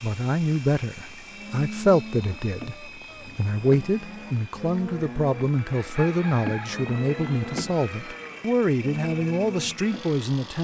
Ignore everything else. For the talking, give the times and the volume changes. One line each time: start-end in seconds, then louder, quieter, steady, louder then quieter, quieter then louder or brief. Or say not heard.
0.0-10.5 steady.